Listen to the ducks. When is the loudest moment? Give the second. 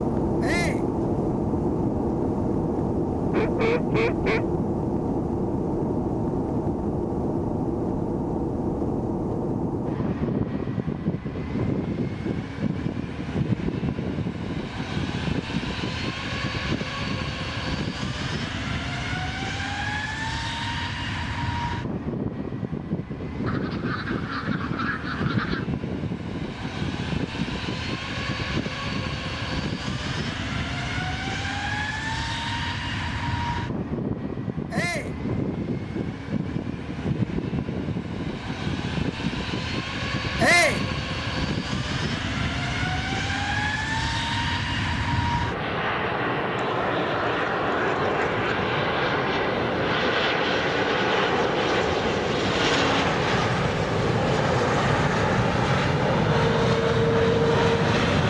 4 s.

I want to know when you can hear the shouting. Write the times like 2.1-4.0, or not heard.
0.4-0.8, 34.7-35.1, 40.4-40.9.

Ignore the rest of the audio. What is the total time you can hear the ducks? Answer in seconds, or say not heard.
5 s.